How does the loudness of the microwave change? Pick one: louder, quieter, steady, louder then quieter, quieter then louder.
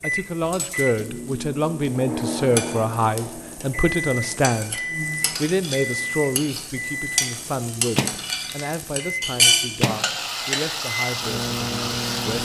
steady.